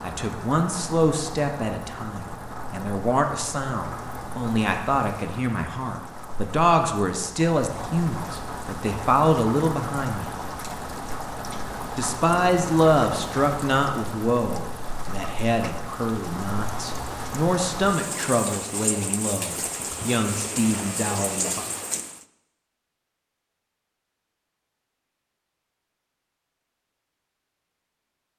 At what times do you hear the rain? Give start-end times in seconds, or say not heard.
0.0-22.2.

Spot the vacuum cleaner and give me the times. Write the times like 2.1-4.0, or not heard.
not heard.